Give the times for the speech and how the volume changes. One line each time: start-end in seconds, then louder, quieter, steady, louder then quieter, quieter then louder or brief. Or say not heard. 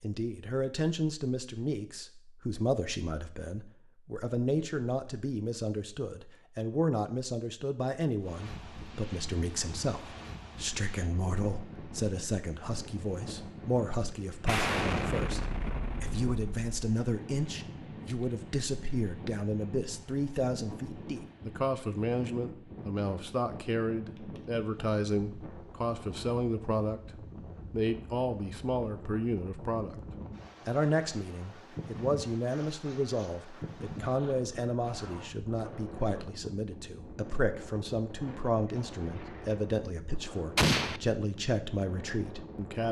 0.0-29.9 steady
30.6-42.8 steady.